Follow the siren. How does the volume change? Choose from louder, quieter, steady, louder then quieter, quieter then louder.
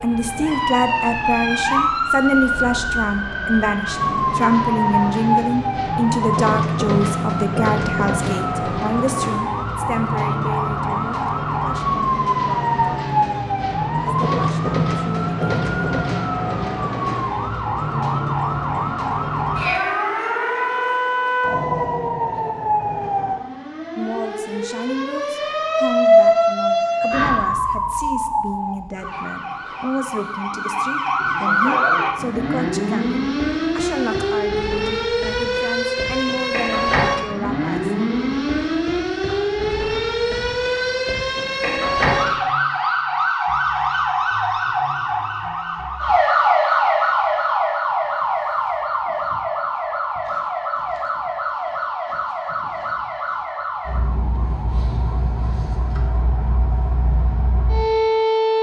steady.